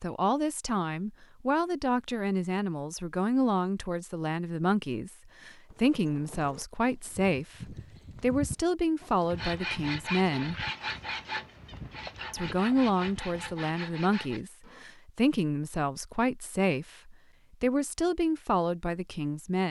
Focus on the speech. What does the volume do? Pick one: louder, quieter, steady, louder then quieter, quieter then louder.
steady.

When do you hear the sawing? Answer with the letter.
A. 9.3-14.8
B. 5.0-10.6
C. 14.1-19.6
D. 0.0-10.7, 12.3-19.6
A.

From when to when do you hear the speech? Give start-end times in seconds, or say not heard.
0.0-10.7, 12.3-19.6.